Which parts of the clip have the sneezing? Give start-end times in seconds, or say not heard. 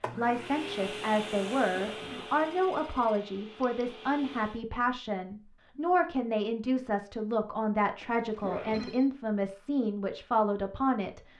1.7-2.2, 8.4-8.9.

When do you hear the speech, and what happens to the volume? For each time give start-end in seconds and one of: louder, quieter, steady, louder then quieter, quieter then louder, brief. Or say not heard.
0.1-11.2 steady.